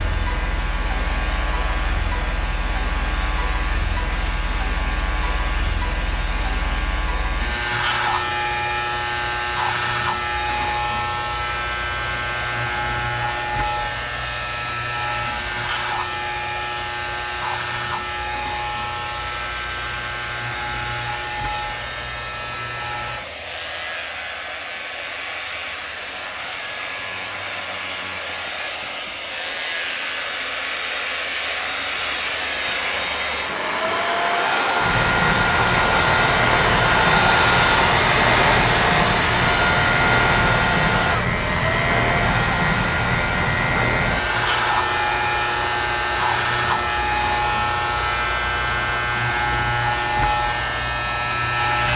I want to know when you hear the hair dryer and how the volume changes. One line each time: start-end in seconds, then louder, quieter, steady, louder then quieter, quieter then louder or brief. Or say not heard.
0.0-51.8 louder then quieter.